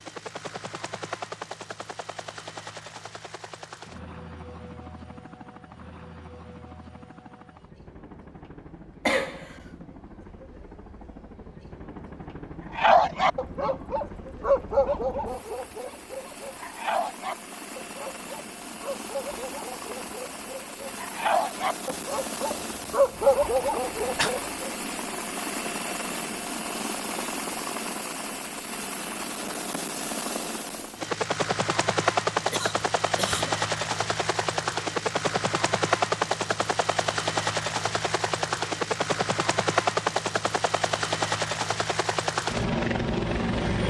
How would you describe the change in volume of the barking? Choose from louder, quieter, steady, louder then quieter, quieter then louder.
quieter then louder.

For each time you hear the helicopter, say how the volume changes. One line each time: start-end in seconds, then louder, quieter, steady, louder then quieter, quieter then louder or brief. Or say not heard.
0.0-43.8 louder.